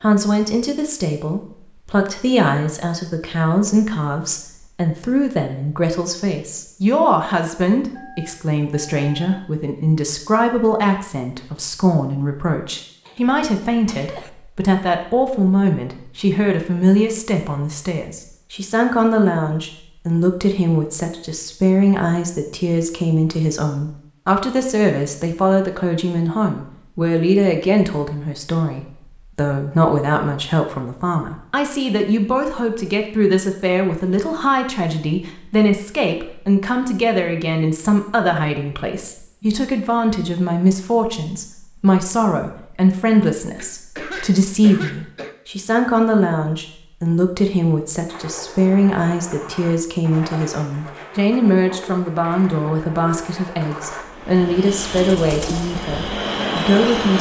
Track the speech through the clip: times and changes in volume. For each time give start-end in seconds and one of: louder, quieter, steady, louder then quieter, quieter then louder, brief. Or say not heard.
0.0-57.1 steady.